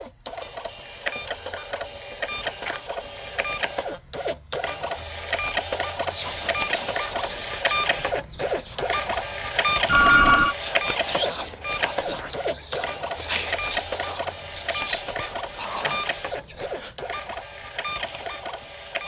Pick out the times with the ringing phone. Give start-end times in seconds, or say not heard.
9.8-10.6.